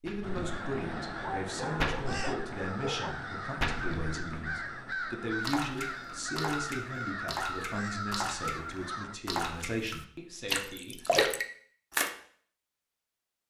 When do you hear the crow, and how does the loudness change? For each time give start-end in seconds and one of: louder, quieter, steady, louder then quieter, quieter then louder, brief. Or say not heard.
0.2-9.2 steady.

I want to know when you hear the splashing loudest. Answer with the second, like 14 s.
11 s.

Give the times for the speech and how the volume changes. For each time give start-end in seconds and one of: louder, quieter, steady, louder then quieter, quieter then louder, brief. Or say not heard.
0.0-11.0 steady.